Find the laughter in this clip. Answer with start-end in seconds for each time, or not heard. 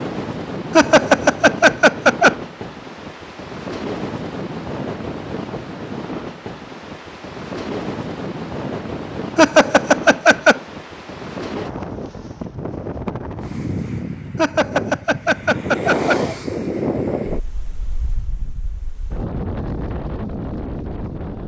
0.7-2.4, 9.3-10.6, 14.3-16.4.